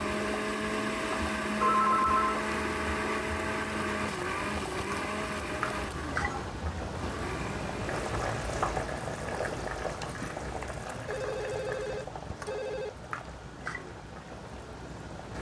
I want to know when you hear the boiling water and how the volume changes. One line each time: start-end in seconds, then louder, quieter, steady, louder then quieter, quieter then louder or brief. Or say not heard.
0.0-15.3 louder then quieter.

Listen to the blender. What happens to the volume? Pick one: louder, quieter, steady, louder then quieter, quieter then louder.
quieter.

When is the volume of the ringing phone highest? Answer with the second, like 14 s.
2 s.